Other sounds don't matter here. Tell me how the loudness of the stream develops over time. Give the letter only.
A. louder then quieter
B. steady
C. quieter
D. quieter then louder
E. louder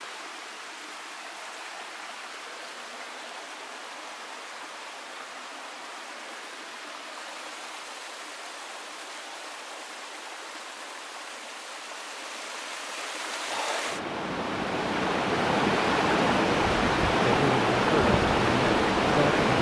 E.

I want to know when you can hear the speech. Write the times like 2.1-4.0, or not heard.
17.2-19.5.